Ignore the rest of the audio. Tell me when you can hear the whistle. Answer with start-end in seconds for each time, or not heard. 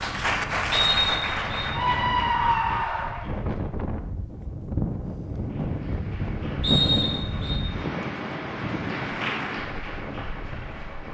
0.7-1.6, 6.6-7.6.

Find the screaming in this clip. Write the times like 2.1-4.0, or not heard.
1.8-3.2.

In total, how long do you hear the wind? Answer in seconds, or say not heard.
11 s.